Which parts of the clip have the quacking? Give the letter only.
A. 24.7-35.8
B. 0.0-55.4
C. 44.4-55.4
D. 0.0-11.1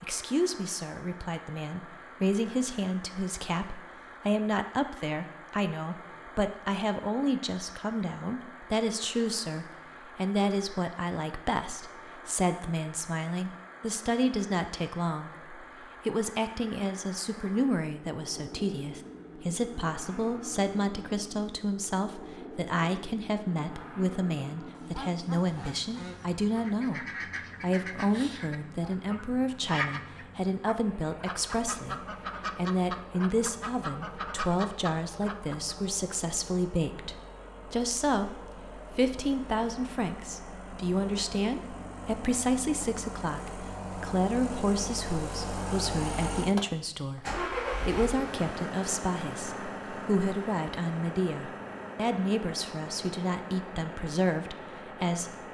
A.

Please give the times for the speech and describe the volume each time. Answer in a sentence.
You can hear the speech from 0.0 to 55.4 s, at a steady volume.